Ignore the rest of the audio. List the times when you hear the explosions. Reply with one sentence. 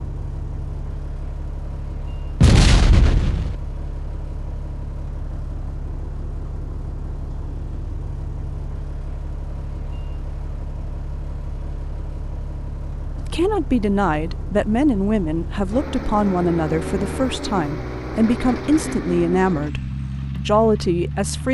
The explosions can be heard from 2.4 to 3.5 s.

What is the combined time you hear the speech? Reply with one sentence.
You can hear the speech for 8 seconds altogether.